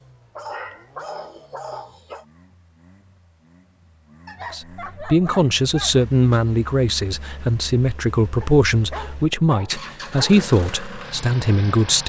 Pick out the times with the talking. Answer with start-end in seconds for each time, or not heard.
4.5-12.0.